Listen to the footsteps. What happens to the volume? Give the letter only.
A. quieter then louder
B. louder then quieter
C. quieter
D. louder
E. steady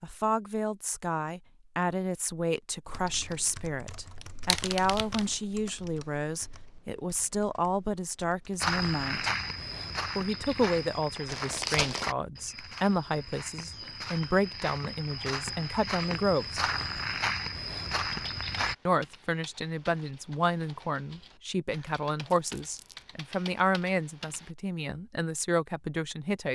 A.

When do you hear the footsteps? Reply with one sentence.
You can hear the footsteps from 8.6 to 18.8 s.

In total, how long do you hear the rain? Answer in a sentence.
The rain can't be heard in this clip.